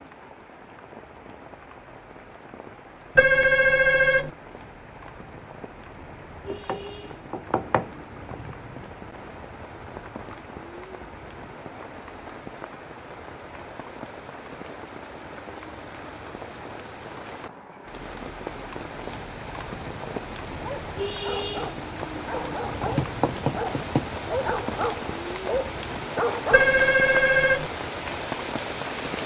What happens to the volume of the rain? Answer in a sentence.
The volume of the rain goes up.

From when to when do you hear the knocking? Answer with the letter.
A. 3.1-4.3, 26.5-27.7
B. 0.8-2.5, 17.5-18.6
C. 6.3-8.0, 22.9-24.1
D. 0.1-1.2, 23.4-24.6
C.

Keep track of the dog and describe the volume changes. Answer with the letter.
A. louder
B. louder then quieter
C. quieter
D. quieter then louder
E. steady
A.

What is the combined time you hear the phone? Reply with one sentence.
You can hear the phone for 2 seconds altogether.